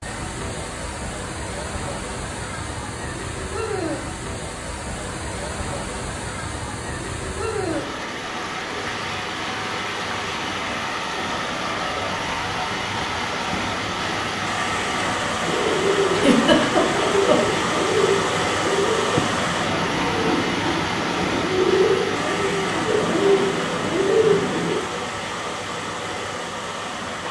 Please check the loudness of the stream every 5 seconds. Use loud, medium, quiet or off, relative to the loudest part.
medium, medium, loud, loud, loud, medium.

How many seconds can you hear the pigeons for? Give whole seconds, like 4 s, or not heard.
9 s.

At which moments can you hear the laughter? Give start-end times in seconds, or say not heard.
16.1-17.6.